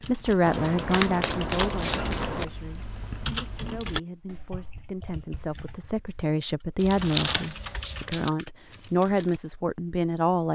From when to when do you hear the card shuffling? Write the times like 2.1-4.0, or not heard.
0.5-2.5, 6.8-8.3.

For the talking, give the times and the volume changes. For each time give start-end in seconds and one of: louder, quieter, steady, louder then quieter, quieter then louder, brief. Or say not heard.
0.0-10.4 quieter then louder.